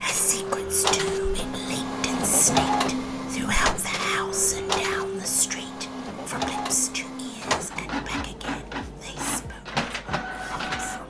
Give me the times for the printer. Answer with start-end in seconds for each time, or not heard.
0.0-11.0.